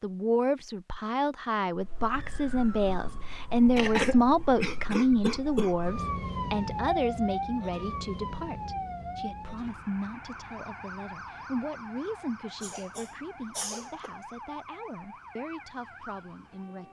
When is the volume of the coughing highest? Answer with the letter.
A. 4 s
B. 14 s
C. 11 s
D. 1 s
A.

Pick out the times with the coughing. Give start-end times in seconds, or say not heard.
3.8-5.7, 12.6-14.2.